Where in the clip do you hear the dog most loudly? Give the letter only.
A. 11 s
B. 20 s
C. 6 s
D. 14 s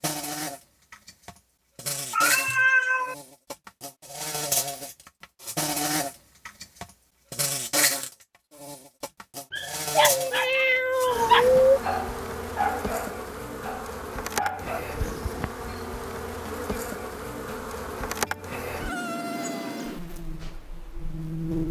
A.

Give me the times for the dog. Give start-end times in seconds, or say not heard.
9.5-14.8.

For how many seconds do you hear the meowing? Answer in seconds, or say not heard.
4 s.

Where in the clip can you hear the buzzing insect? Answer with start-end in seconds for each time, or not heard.
0.0-21.6.